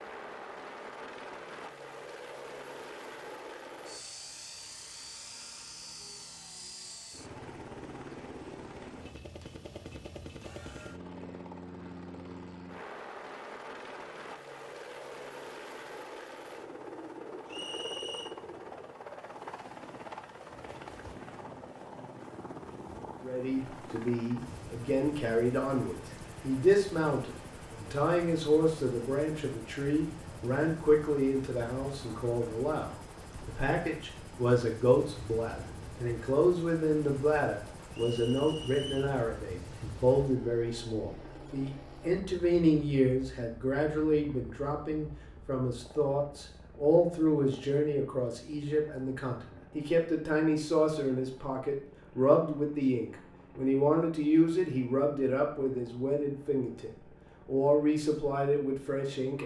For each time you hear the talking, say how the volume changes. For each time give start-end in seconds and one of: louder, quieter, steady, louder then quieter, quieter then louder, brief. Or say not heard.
23.2-59.4 steady.